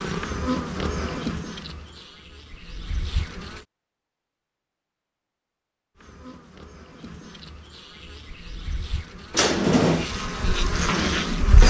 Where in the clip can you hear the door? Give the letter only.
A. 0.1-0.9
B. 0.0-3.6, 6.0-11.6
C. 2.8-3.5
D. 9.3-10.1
D.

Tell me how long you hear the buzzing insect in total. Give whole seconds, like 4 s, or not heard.
9 s.